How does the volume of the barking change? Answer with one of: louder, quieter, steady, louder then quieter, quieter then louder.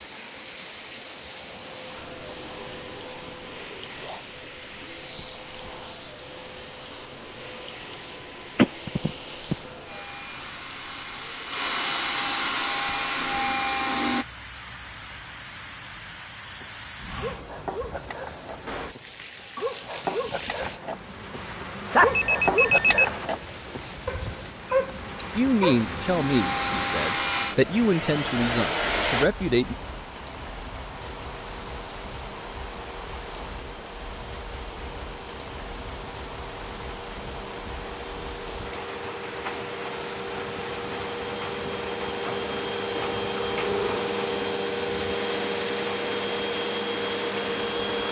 louder.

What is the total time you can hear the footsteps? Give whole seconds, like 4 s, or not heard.
not heard.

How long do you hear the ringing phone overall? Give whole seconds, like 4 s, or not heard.
3 s.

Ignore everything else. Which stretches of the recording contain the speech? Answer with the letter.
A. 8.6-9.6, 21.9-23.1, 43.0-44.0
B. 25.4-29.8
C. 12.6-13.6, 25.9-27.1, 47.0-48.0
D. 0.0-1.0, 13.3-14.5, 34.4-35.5
B.